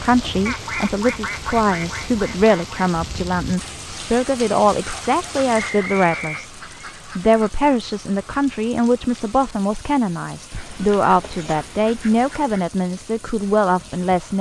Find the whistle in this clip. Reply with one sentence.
You can hear the whistle from 5.5 to 6.5 s.